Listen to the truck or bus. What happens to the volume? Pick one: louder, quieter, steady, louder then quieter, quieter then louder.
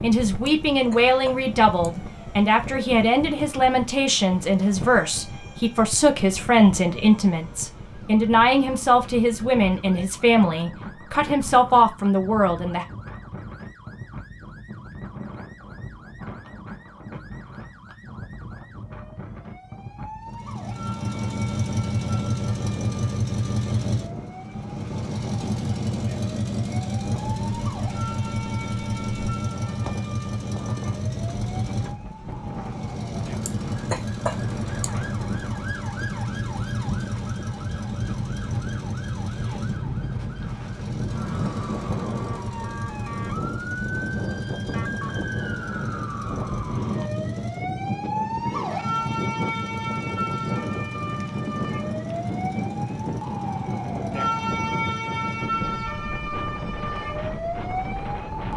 quieter.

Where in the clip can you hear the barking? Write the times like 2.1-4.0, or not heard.
not heard.